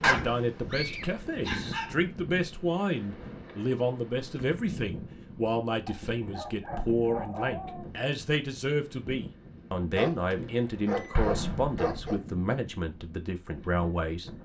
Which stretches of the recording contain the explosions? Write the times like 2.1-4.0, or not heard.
11.2-12.2.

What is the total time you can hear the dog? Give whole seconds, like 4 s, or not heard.
6 s.